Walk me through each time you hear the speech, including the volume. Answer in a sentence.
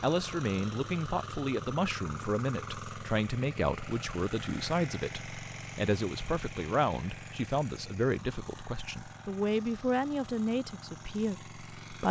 The speech can be heard from 0.0 to 12.0 s, at a steady volume.